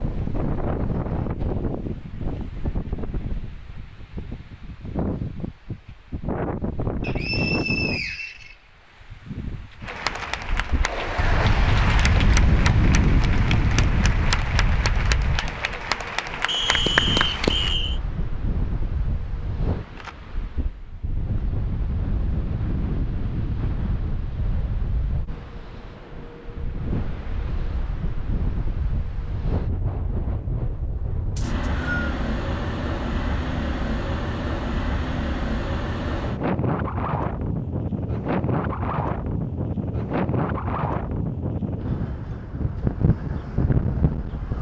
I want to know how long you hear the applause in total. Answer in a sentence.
You can hear the applause for 8 seconds altogether.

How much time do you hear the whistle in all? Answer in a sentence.
You can hear the whistle for 4 seconds altogether.